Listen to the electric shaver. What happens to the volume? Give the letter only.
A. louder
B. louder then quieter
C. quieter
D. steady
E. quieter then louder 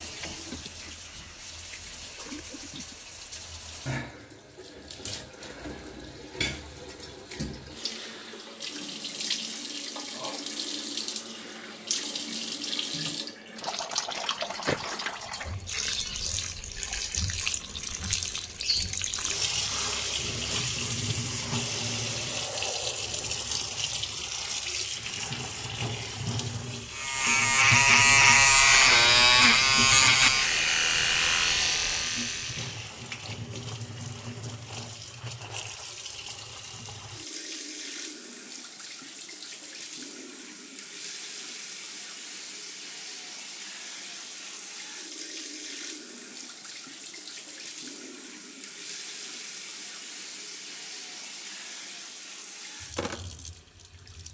C.